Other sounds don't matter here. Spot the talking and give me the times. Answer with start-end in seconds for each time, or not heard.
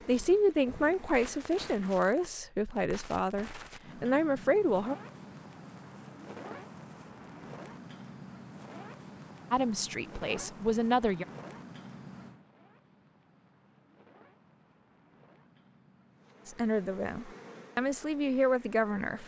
0.1-5.0, 9.5-11.2, 16.4-19.2.